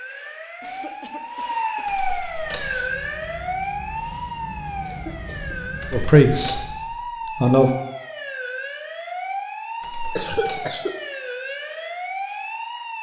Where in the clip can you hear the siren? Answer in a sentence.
You can hear the siren from 0.0 to 12.9 s.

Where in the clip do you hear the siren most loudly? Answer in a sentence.
The volume of the siren peaks at 2 seconds.